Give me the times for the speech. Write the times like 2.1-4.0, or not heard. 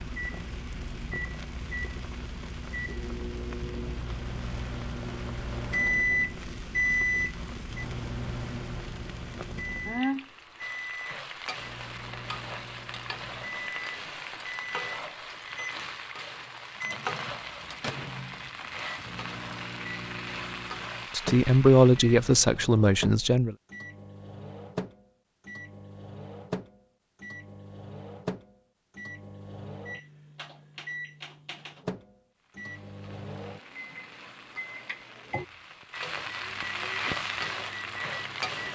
21.1-23.6.